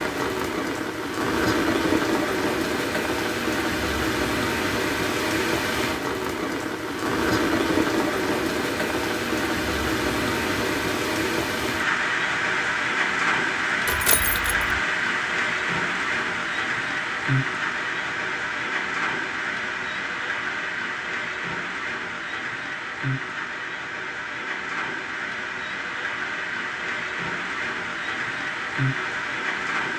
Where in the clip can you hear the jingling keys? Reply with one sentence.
You can hear the jingling keys from 13.8 to 14.8 s.